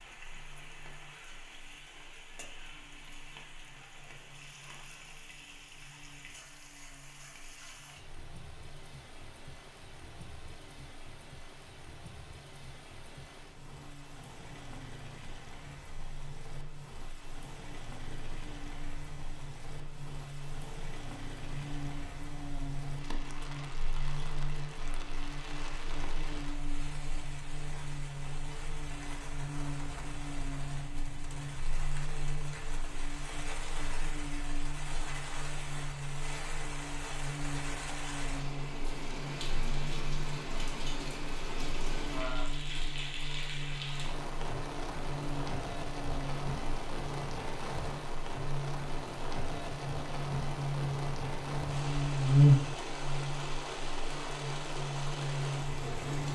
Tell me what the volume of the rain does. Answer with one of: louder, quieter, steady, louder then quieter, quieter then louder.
louder.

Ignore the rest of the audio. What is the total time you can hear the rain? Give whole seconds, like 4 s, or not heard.
56 s.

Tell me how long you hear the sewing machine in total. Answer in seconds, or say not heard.
not heard.